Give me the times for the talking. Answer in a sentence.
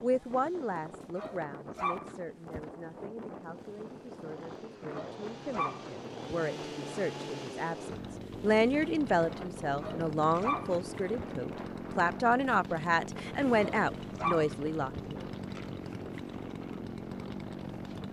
You can hear the talking from 0.0 to 15.2 s.